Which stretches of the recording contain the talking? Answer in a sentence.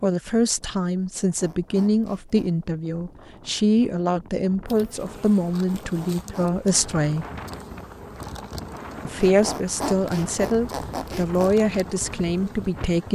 You can hear the talking from 0.0 to 7.2 s and from 9.1 to 13.0 s.